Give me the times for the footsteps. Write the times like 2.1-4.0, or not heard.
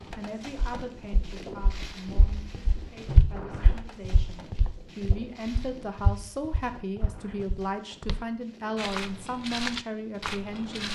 0.0-10.8.